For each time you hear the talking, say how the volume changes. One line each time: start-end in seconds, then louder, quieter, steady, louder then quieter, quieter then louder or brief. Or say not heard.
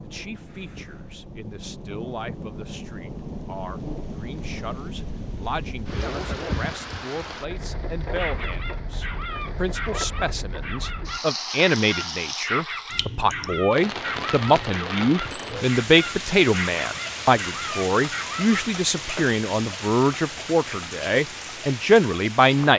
0.0-22.7 louder.